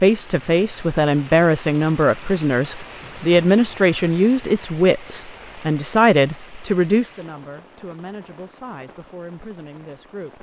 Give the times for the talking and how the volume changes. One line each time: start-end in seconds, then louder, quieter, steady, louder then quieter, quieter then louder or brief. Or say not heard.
0.0-10.3 quieter.